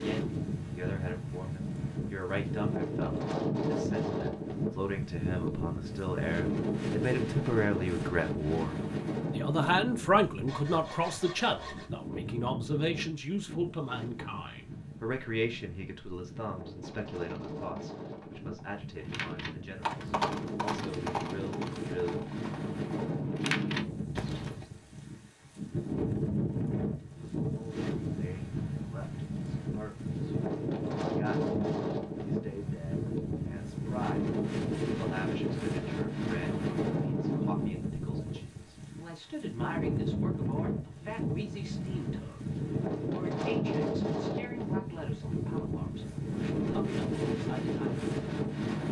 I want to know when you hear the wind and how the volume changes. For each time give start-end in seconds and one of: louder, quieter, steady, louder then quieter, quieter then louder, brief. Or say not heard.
0.0-48.8 quieter then louder.